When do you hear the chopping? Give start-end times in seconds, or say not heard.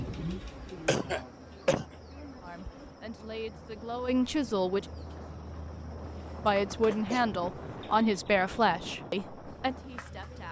not heard.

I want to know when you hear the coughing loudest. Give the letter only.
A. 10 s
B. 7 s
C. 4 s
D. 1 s
D.